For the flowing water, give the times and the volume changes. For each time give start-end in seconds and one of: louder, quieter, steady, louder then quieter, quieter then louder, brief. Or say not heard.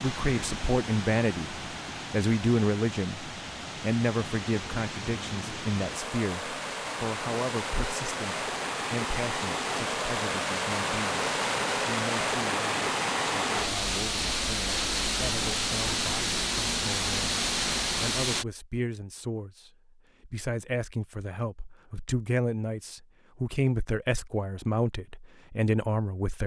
0.0-18.4 louder.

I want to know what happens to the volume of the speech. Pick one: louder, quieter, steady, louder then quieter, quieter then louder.
quieter then louder.